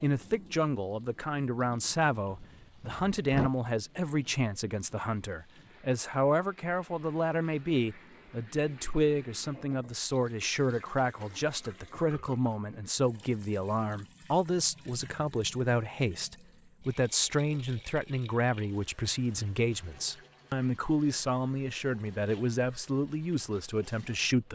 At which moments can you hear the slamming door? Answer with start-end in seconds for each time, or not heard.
2.2-3.5.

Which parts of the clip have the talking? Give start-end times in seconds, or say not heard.
0.0-24.5.